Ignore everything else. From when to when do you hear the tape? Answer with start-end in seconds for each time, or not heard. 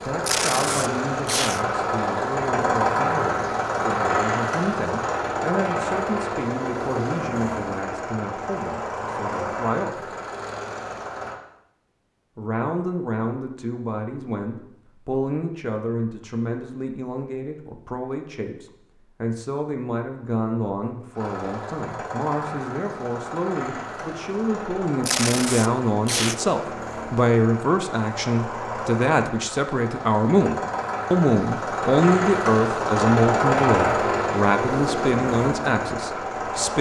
0.2-1.6, 25.0-26.4.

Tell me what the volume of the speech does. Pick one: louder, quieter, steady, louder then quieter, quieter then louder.
louder.